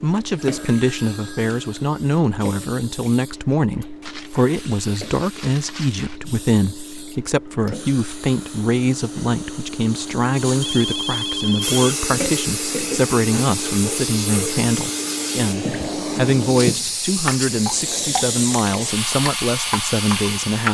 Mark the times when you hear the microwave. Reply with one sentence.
The microwave can't be heard in this clip.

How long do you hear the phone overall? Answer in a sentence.
The phone can be heard for 3 seconds in total.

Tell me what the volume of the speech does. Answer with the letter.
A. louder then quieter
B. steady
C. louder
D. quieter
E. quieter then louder
B.